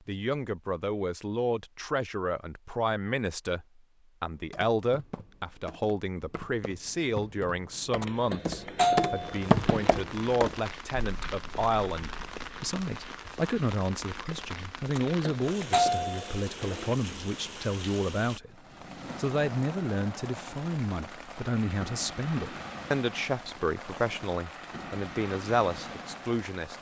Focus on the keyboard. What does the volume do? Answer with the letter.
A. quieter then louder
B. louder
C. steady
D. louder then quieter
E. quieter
D.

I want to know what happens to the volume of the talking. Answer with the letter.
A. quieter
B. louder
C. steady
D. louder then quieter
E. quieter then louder
C.